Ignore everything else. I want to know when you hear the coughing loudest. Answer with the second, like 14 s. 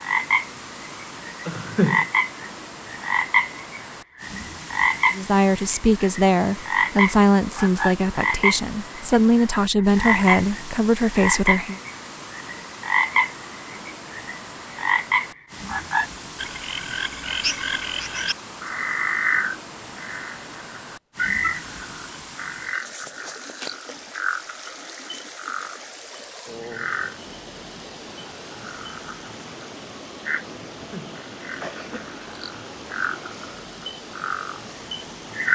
2 s.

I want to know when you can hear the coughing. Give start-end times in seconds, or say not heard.
1.4-2.0, 30.7-32.1.